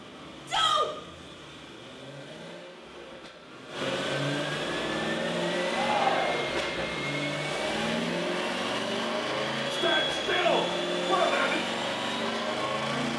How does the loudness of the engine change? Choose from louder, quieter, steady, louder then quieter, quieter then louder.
louder.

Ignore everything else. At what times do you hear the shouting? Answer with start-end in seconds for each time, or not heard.
0.5-0.9, 5.7-6.6, 9.7-11.6.